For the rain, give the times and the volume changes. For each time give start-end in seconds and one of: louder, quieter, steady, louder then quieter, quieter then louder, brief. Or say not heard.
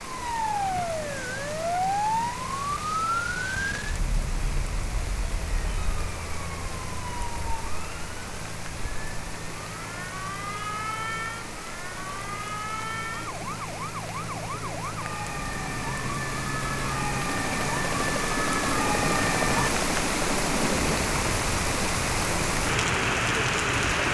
0.0-24.0 louder.